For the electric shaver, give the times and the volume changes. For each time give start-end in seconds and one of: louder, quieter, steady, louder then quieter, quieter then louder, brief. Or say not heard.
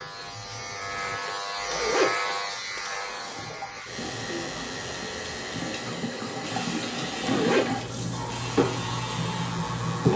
0.0-10.1 quieter.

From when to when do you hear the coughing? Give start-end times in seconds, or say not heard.
not heard.